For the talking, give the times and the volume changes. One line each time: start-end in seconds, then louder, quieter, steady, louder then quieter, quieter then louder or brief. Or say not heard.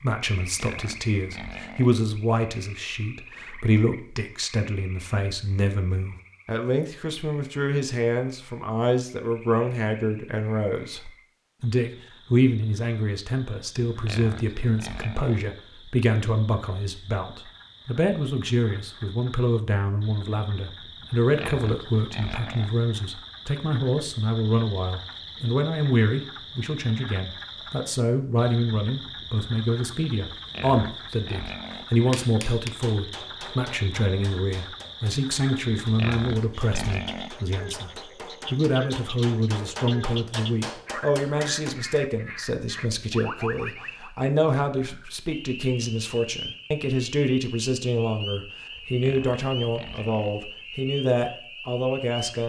0.0-52.4 steady.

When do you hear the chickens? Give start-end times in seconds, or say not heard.
not heard.